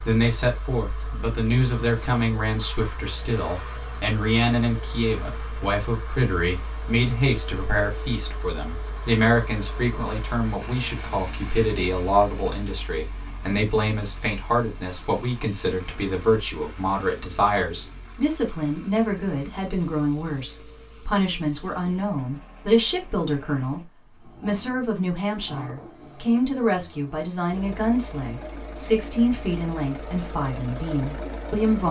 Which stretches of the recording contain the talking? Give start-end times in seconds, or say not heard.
0.0-31.8.